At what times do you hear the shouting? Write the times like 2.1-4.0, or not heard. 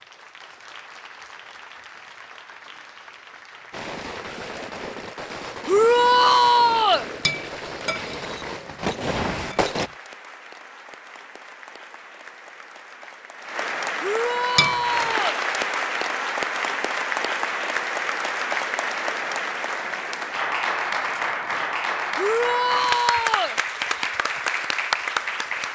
5.7-7.0, 14.0-15.4, 22.1-23.6.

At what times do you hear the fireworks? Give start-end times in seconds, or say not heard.
3.7-9.9.